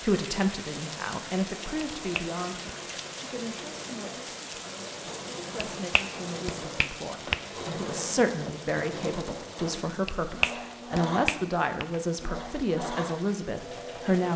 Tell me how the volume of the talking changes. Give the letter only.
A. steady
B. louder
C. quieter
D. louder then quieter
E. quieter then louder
E.